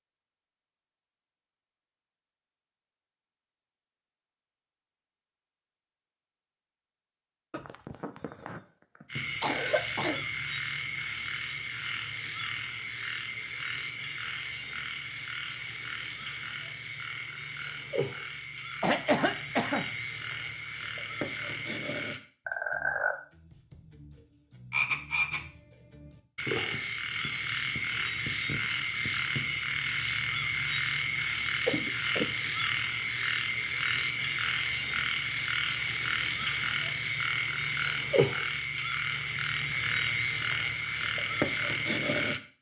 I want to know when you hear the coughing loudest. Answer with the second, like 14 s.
19 s.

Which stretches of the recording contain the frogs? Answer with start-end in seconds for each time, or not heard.
9.1-42.5.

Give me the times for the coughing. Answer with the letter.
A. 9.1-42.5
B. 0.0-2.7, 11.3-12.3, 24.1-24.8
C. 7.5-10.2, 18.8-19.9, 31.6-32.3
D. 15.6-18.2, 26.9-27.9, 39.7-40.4
C.